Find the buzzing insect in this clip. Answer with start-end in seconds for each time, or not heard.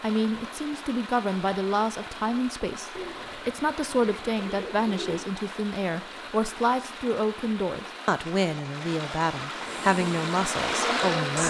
9.6-11.4.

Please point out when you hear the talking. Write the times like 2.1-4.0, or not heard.
0.0-11.4.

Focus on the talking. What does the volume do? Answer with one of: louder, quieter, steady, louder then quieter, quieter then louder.
steady.